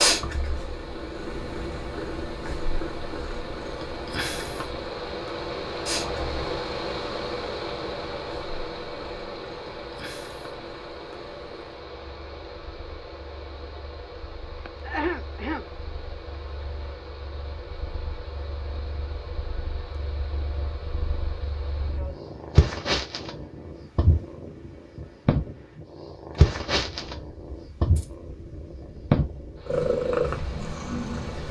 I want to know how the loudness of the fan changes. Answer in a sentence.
The volume of the fan goes down.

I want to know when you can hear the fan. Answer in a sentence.
You can hear the fan from 0.1 to 31.4 s.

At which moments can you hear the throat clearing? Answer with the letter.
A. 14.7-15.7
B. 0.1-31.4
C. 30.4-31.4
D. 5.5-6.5
A.